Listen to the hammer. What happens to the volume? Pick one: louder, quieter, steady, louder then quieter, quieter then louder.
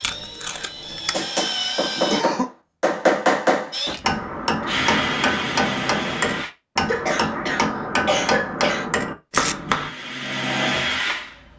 steady.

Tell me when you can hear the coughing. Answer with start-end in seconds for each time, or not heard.
1.9-2.5, 6.8-8.8.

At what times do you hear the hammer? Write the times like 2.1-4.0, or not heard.
1.1-9.9.